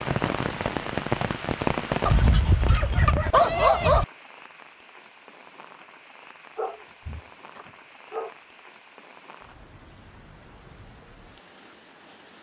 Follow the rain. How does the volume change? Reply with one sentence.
The volume of the rain goes down.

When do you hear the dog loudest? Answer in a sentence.
The loudest moment of the dog is at 4 seconds.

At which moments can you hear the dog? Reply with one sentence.
You can hear the dog from 2.0 to 4.0 s and from 6.5 to 8.3 s.